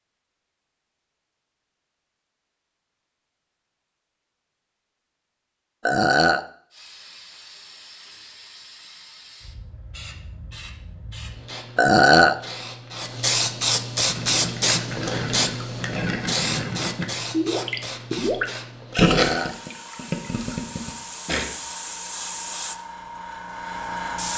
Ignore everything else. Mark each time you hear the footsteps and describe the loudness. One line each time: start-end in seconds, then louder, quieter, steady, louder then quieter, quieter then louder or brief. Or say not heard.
not heard.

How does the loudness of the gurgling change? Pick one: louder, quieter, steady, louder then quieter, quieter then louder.
louder then quieter.